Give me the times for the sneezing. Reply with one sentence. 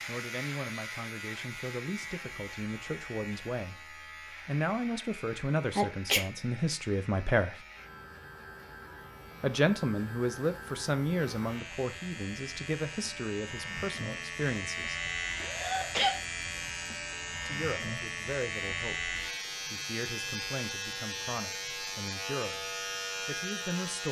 You can hear the sneezing from 5.8 to 6.2 s and from 15.4 to 16.2 s.